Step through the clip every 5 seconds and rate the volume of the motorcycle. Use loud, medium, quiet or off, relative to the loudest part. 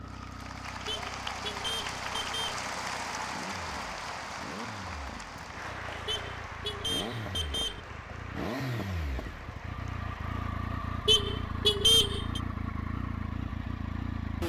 medium, loud, loud.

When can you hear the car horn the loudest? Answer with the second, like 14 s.
12 s.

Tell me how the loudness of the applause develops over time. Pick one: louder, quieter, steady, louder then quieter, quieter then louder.
quieter.